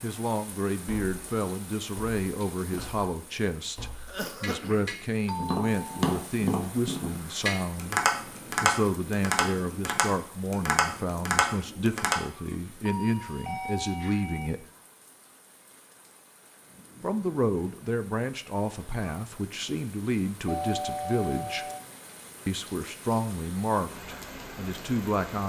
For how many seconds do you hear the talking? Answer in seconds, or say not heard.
22 s.